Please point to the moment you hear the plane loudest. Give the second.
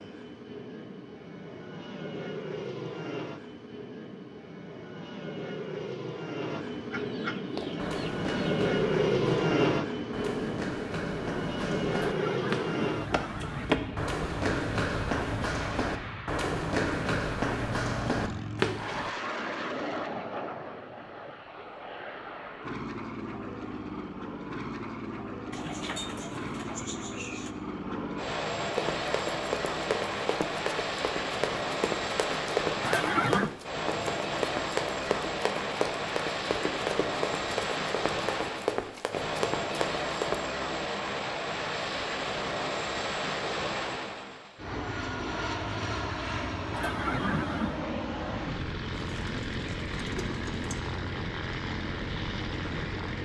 9 s.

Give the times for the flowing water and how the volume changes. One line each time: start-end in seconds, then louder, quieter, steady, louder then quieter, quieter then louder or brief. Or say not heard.
not heard.